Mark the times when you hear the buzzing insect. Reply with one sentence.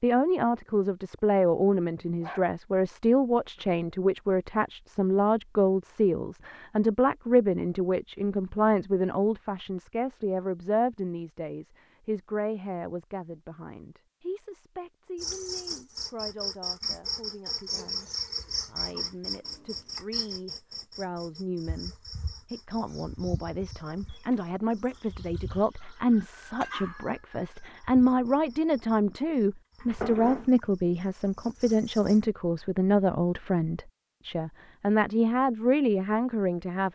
The buzzing insect can be heard from 15.2 to 32.2 s.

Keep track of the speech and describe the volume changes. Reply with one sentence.
The volume of the speech goes down, then up.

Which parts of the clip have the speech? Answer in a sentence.
You can hear the speech from 0.0 to 36.8 s.